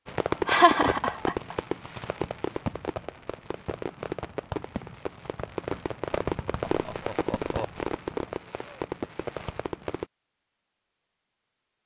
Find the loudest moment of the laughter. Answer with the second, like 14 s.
1 s.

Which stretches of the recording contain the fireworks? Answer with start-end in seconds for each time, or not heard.
0.1-10.1.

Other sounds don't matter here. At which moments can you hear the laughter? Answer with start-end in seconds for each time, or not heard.
0.5-1.6, 6.7-7.8.